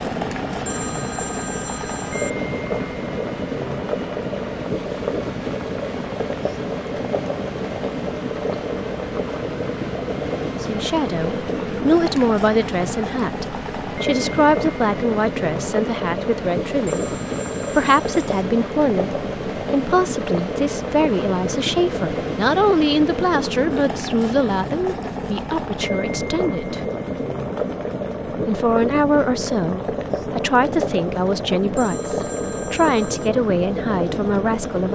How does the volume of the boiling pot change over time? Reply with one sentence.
The loudness of the boiling pot stays about the same.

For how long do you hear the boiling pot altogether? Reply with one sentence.
You can hear the boiling pot for 35 seconds altogether.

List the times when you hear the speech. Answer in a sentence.
You can hear the speech from 10.5 to 17.1 s, from 17.8 to 26.8 s and from 28.4 to 34.9 s.